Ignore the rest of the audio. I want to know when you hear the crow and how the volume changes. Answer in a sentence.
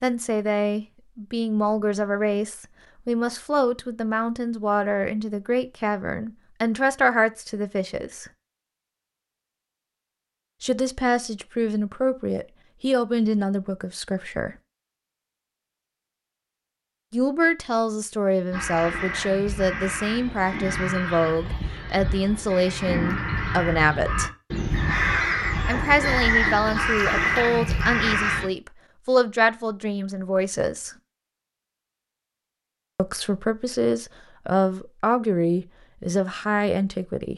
The crow can be heard from 18.5 to 28.5 s, getting louder.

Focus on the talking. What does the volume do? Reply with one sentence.
The volume of the talking stays about the same.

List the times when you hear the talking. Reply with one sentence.
The talking can be heard from 0.0 to 8.3 s, from 10.6 to 14.6 s, from 17.1 to 24.3 s, from 25.6 to 30.9 s and from 33.0 to 37.3 s.